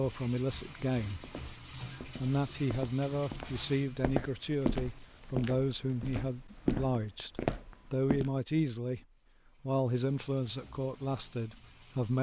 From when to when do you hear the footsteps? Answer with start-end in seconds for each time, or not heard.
1.2-8.3.